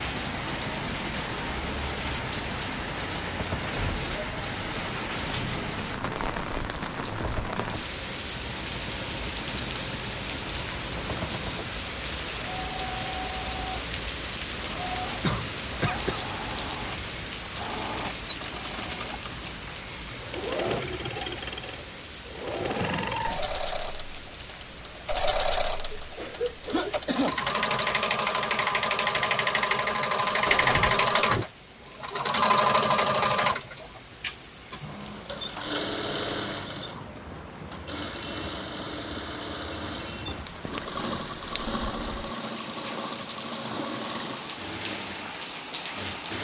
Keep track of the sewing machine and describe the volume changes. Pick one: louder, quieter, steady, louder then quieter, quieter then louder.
louder then quieter.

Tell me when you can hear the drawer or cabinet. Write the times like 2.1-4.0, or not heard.
30.4-31.4.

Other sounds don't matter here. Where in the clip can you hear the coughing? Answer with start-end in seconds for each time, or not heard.
15.2-16.2, 25.9-27.4.